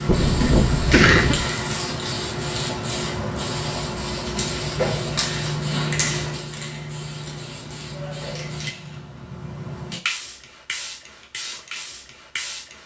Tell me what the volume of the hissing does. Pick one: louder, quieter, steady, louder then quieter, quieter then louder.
quieter.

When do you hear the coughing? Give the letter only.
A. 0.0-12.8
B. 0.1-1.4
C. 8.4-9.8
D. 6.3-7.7
B.